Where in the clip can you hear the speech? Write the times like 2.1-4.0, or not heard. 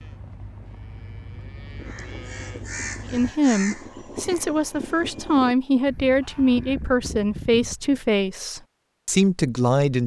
3.0-10.0.